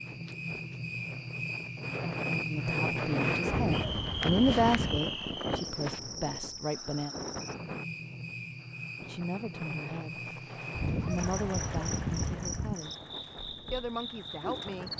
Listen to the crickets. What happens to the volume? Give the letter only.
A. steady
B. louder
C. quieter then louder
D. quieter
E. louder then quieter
D.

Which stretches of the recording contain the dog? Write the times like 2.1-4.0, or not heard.
3.5-5.0, 10.7-12.8.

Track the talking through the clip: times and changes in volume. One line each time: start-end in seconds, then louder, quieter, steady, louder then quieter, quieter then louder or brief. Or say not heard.
2.5-7.2 louder then quieter
9.0-10.2 brief
11.0-12.9 brief
13.7-14.9 brief.